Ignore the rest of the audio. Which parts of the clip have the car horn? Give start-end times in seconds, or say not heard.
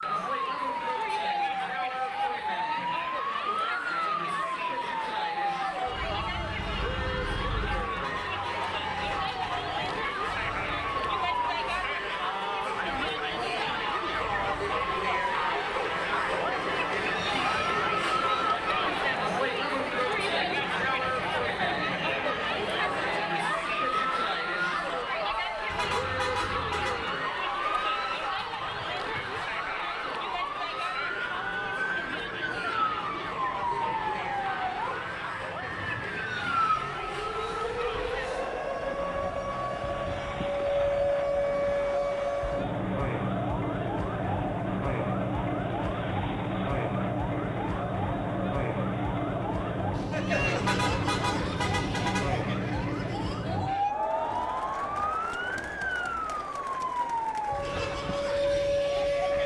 8.0-9.8, 25.7-27.1, 50.5-52.5.